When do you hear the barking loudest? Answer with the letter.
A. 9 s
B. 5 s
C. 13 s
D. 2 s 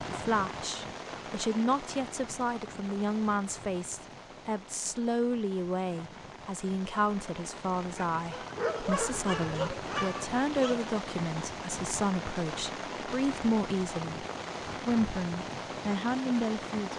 A.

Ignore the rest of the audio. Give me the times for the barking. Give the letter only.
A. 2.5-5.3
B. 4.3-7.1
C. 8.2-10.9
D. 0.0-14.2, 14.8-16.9
C.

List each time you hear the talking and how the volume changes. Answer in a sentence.
The talking can be heard from 0.0 to 14.2 s, at a steady volume; and briefly from 14.8 to 16.9 s.